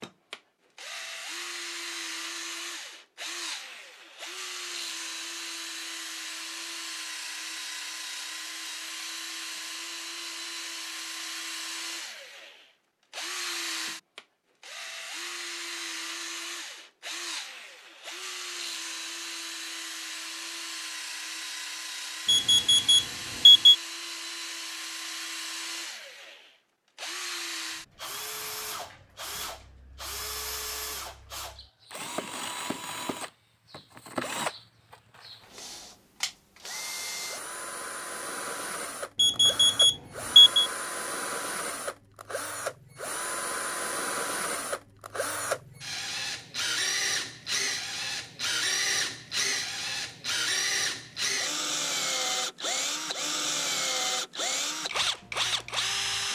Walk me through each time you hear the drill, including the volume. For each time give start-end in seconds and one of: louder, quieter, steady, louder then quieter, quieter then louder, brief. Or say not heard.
0.0-56.3 louder.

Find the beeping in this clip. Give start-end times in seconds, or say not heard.
22.2-23.8, 39.1-40.7.